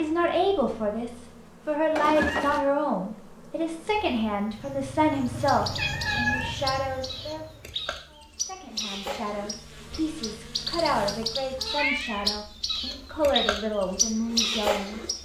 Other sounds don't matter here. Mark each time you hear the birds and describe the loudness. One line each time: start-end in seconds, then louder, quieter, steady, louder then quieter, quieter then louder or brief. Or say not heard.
5.2-15.1 louder.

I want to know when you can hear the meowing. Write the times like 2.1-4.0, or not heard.
1.9-2.6, 5.8-6.6, 11.6-13.2.